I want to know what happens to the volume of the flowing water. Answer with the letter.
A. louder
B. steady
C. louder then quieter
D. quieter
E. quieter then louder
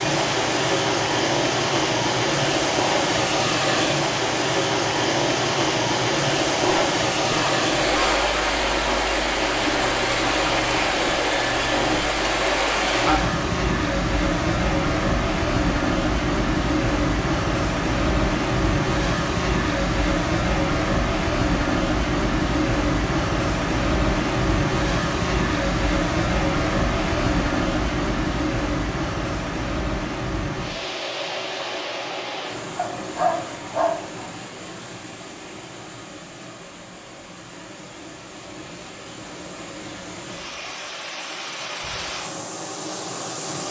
D.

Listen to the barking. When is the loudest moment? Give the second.
33 s.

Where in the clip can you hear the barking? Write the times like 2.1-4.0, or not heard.
6.6-8.1, 32.8-34.3.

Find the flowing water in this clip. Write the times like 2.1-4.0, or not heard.
0.0-43.6.